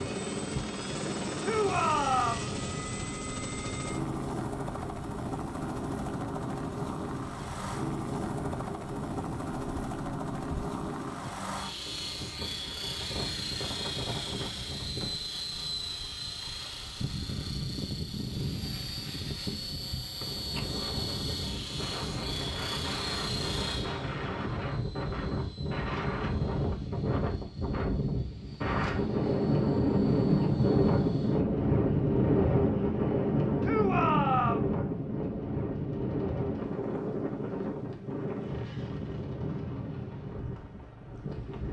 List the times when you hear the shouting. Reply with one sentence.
You can hear the shouting from 1.4 to 2.5 s and from 33.6 to 34.7 s.